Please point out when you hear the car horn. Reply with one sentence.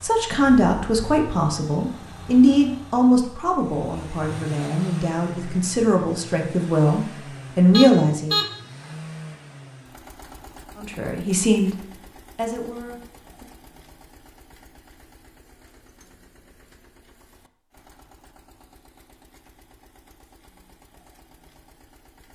You can hear the car horn from 7.7 to 8.5 s.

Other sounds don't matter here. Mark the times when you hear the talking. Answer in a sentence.
The talking can be heard from 0.0 to 8.3 s, from 10.8 to 11.8 s and from 12.3 to 13.4 s.